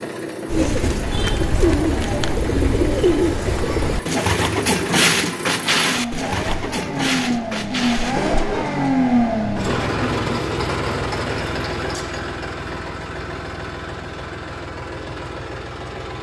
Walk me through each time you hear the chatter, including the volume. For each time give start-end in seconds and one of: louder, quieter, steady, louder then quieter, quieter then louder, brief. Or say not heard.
not heard.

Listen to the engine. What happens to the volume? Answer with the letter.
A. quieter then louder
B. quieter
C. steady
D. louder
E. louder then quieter
E.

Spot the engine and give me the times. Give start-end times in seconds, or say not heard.
0.0-16.1.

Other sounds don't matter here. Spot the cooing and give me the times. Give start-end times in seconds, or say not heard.
0.5-8.9.